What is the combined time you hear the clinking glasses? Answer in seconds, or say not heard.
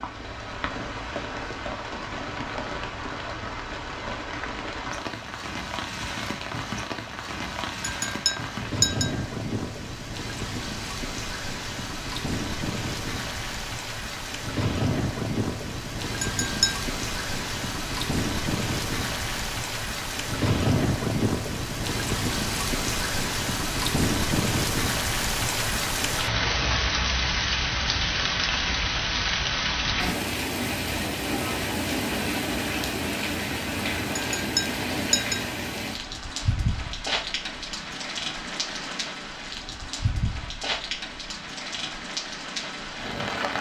3 s.